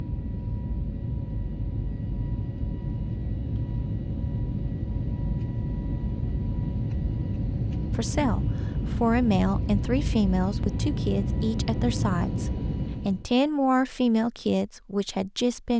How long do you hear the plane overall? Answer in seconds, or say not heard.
13 s.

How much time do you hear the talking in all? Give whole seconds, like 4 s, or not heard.
8 s.